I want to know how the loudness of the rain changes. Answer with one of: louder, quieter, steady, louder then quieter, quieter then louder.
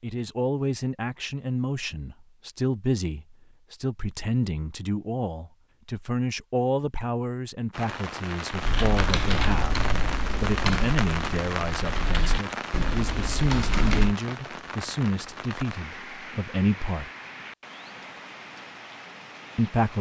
quieter.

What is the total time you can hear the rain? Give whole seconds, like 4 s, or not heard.
12 s.